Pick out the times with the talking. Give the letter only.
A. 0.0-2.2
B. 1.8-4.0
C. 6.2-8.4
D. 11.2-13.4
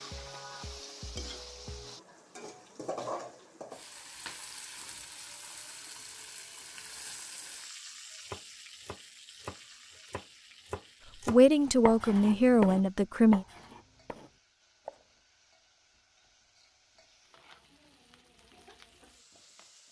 D.